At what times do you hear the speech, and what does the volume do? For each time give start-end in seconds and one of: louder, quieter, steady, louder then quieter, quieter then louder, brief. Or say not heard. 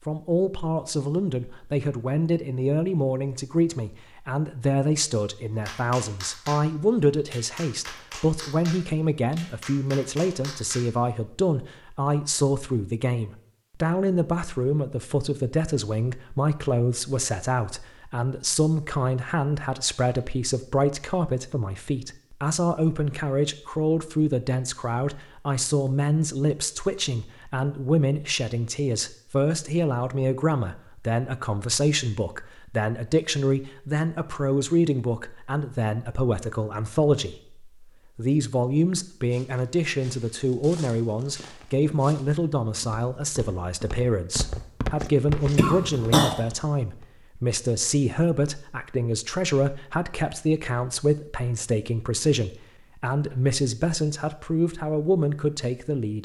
0.1-56.2 steady.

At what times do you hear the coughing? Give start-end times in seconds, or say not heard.
45.5-46.4.